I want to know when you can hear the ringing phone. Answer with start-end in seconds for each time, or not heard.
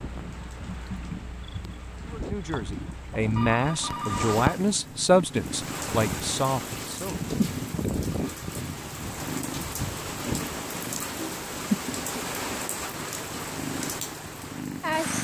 3.4-4.5.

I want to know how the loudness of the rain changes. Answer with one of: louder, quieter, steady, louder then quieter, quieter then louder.
louder.